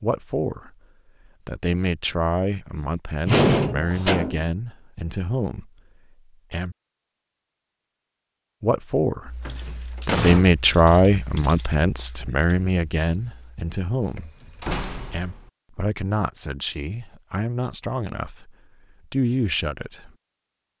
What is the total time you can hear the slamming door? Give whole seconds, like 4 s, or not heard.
3 s.